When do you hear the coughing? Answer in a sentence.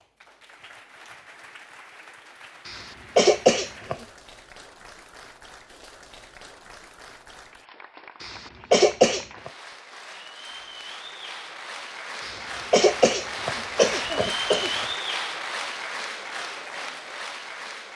The coughing can be heard from 2.6 to 4.0 s, from 8.2 to 9.5 s and from 12.2 to 14.8 s.